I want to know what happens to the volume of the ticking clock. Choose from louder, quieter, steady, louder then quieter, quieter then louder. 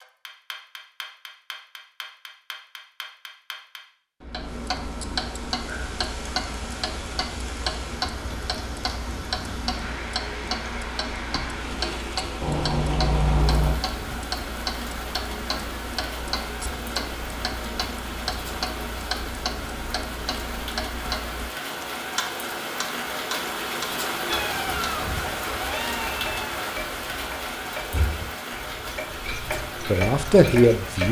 steady.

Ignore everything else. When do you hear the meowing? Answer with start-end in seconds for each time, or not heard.
12.4-13.8, 24.2-26.5.